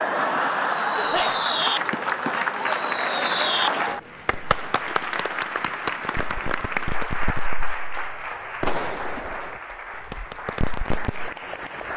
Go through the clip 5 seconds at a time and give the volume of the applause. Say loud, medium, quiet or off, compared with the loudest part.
loud, medium, medium.